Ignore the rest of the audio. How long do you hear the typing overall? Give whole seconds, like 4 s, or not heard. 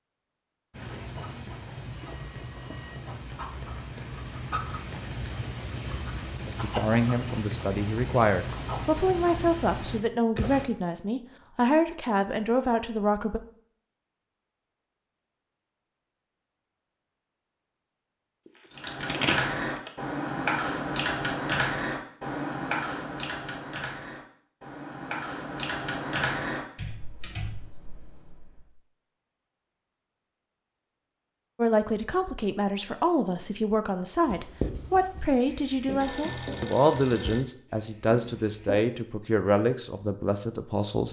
10 s.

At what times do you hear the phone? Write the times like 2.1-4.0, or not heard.
1.9-3.0, 18.9-19.9, 36.0-37.5.